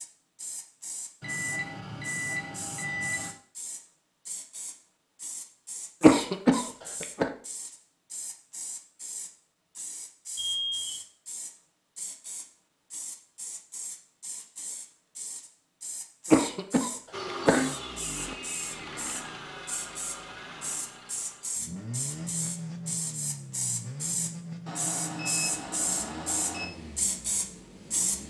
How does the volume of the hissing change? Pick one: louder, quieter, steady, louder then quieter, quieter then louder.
louder.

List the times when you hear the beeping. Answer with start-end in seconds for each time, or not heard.
1.2-3.3, 10.3-11.0, 24.6-26.6.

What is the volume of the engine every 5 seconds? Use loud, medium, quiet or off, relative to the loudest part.
off, off, off, loud, loud, medium.